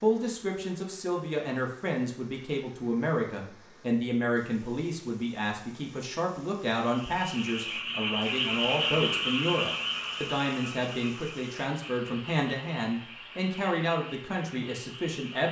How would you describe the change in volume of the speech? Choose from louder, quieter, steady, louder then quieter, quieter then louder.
steady.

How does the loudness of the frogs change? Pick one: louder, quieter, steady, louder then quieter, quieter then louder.
quieter.